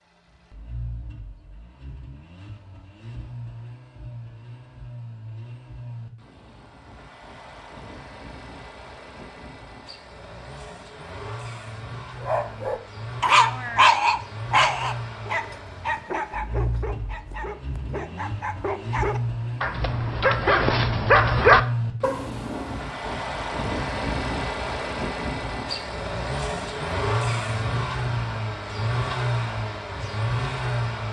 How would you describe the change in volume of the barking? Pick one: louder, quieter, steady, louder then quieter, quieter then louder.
quieter then louder.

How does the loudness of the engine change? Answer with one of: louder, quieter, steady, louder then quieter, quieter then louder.
louder.